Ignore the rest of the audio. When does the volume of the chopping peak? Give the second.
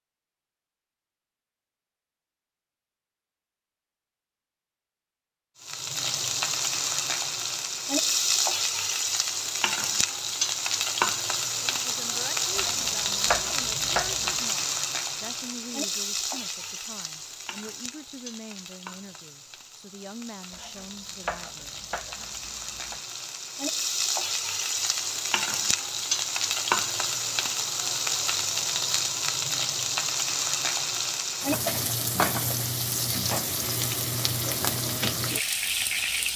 13 s.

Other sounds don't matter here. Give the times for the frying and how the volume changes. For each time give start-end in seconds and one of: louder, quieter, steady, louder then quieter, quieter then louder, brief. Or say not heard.
5.6-36.3 quieter then louder.